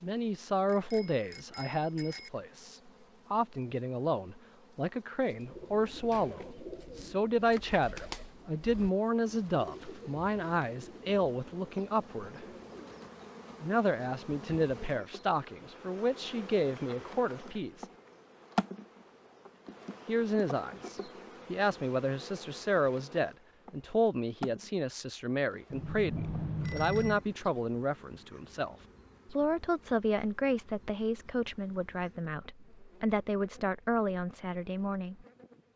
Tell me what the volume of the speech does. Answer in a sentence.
The loudness of the speech stays about the same.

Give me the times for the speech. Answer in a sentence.
The speech can be heard from 0.0 to 12.4 s, from 13.6 to 17.9 s and from 20.1 to 35.2 s.